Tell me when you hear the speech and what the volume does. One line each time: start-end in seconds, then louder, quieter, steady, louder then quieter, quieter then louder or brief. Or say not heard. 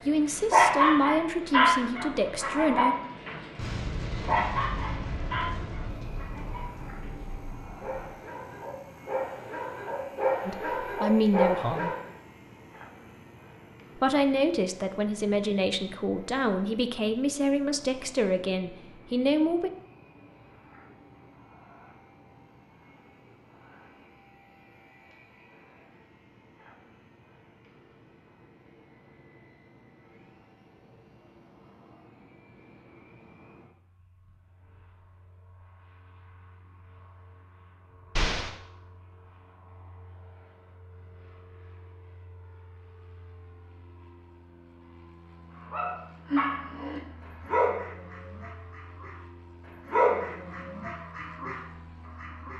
0.1-3.0 brief
10.4-11.9 brief
13.9-19.7 steady.